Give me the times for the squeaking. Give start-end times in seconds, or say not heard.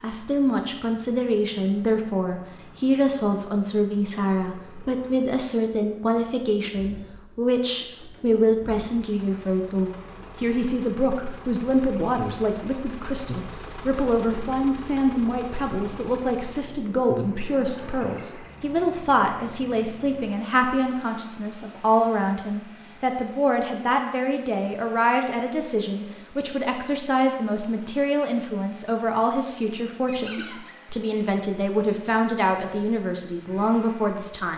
30.1-30.8.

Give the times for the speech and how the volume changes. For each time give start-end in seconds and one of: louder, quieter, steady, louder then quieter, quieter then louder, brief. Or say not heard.
0.0-34.5 steady.